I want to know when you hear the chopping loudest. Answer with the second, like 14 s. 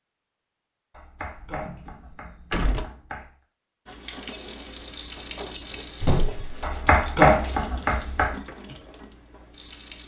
7 s.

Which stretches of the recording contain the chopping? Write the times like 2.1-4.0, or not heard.
0.9-3.3, 6.6-8.3.